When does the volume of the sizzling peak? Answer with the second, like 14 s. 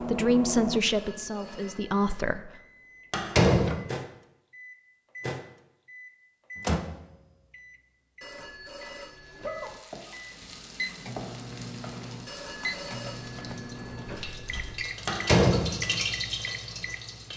16 s.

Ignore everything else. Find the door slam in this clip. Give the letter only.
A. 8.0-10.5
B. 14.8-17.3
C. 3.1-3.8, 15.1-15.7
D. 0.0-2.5
C.